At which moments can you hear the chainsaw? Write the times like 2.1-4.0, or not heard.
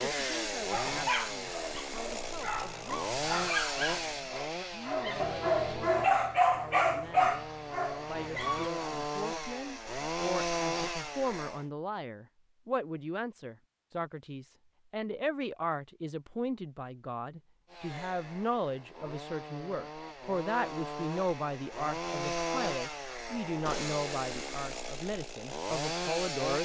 0.0-11.7, 17.7-26.6.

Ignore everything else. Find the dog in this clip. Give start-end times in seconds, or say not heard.
0.6-8.7.